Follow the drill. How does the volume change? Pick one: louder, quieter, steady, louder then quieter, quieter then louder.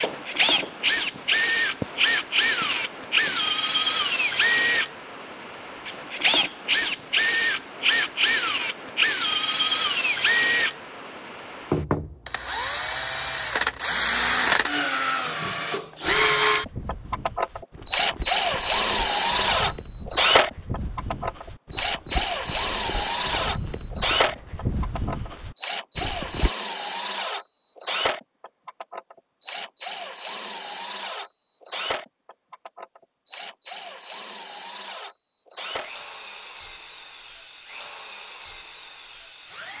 quieter.